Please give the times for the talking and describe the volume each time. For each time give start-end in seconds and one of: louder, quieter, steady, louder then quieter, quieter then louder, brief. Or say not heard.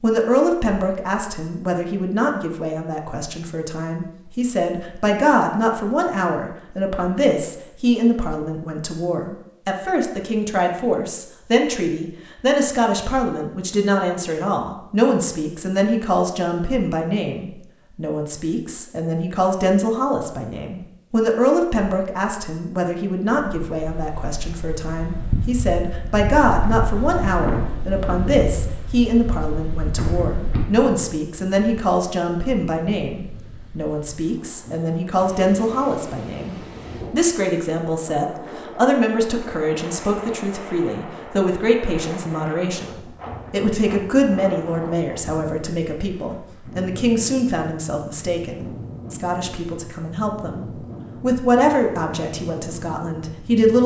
0.0-53.8 steady.